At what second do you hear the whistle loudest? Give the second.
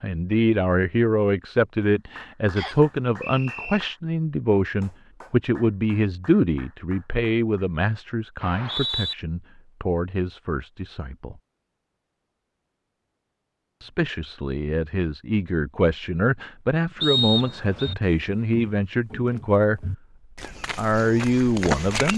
17 s.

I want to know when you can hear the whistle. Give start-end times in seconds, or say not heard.
2.5-3.8, 8.4-9.2, 17.0-17.9.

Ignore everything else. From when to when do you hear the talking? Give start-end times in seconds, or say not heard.
0.0-11.3, 13.8-19.9, 20.8-22.1.